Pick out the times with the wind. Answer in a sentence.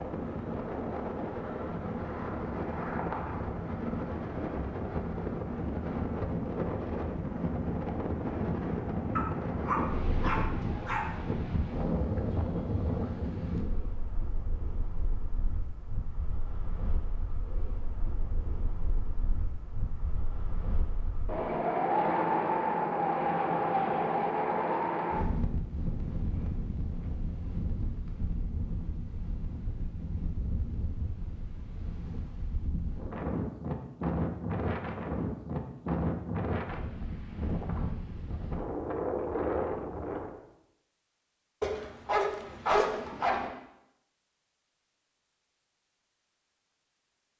The wind can be heard from 0.0 to 40.4 s.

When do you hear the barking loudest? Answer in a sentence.
The loudest moment of the barking is at 43 seconds.